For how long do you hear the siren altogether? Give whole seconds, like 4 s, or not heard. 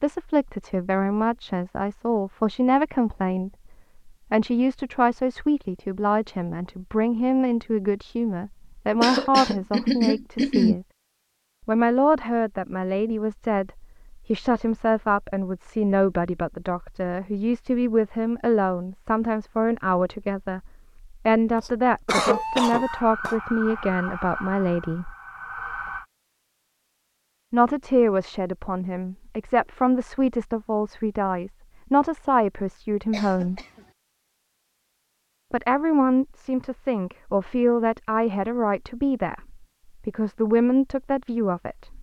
4 s.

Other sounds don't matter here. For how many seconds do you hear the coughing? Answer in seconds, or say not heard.
4 s.